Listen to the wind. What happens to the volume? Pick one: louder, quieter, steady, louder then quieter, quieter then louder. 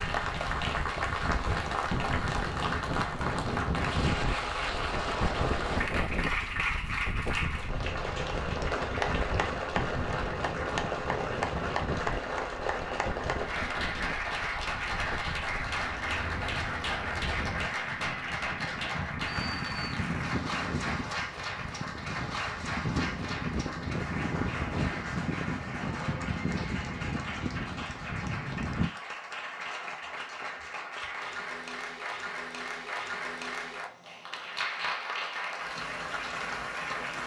quieter then louder.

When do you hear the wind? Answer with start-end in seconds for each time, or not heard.
0.0-28.9.